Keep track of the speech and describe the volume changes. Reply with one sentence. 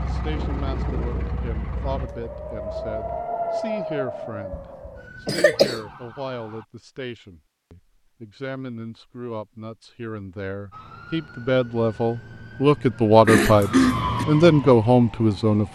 The loudness of the speech goes up.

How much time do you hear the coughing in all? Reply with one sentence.
You can hear the coughing for 2 seconds altogether.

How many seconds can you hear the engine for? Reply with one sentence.
You can hear the engine for 3 seconds altogether.